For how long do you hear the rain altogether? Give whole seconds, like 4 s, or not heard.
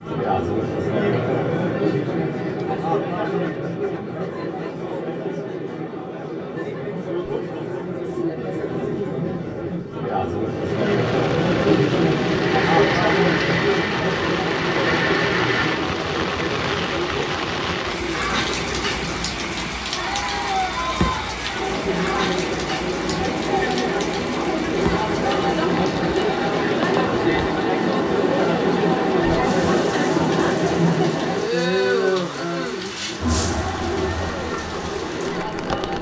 25 s.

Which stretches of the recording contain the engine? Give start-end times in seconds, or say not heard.
12.3-15.9.